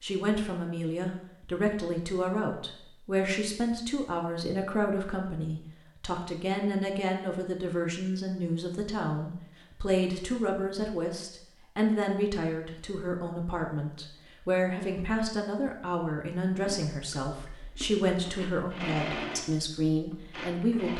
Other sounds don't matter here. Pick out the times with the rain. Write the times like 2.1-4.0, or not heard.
not heard.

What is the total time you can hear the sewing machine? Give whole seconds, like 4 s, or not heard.
4 s.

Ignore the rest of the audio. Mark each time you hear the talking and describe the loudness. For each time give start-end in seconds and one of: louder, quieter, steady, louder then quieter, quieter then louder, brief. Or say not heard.
0.0-20.9 steady.